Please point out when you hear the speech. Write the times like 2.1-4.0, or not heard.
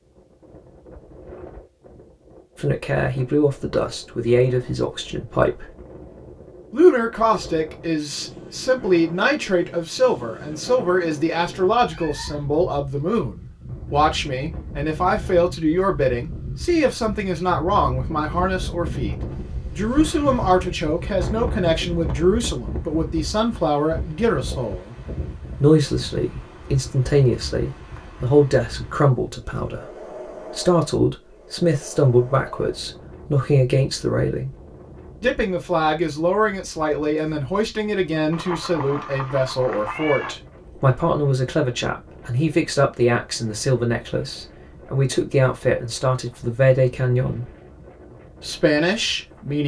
2.5-5.8, 6.7-19.1, 19.8-24.9, 25.6-34.5, 35.2-47.5, 48.4-49.6.